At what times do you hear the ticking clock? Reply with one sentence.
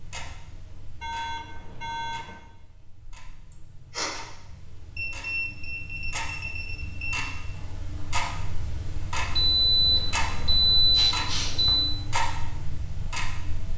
The ticking clock can be heard from 0.0 to 13.7 s.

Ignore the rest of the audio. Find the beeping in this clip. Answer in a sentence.
You can hear the beeping from 1.0 to 2.2 s, from 5.0 to 7.3 s and from 9.3 to 11.9 s.